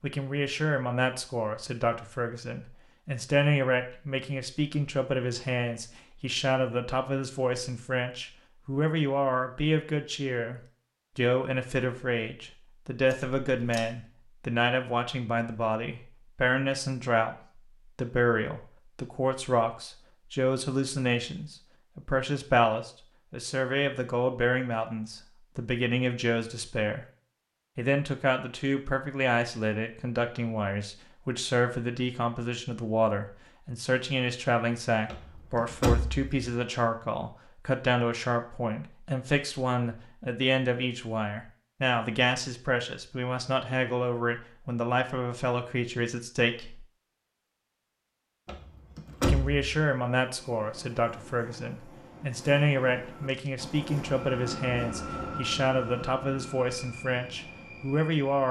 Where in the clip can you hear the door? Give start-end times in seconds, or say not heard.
13.1-13.8, 35.1-36.3, 48.5-49.7.